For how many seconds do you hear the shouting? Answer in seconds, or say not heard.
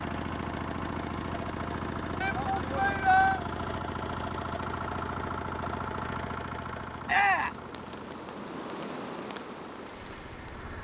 2 s.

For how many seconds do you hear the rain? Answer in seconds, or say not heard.
11 s.